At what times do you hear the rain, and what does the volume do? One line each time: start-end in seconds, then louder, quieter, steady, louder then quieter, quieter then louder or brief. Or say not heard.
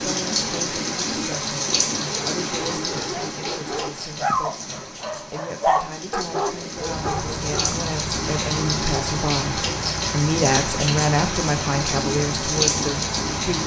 0.0-13.6 quieter then louder.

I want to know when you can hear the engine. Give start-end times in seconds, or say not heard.
6.7-13.6.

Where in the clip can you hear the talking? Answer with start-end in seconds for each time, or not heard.
0.0-13.6.